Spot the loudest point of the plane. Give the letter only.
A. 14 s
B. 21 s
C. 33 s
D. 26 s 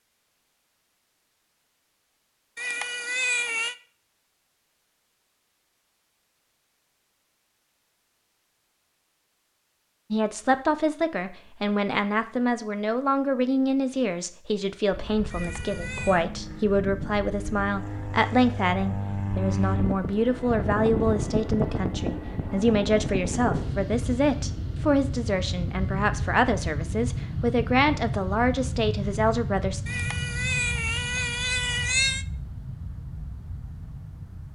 B.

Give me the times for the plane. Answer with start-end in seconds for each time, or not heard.
14.9-34.5.